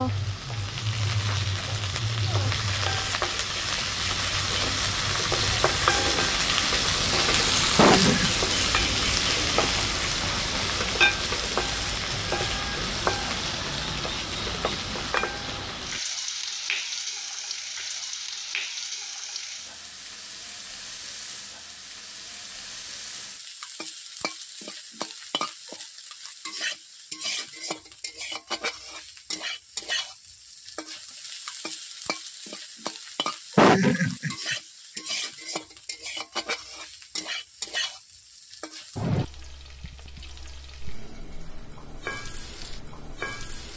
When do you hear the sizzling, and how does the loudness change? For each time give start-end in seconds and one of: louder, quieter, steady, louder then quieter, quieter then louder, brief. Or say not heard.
0.0-43.7 quieter.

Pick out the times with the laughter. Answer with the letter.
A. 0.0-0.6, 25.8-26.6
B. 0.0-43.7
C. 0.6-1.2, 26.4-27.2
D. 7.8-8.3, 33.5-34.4
D.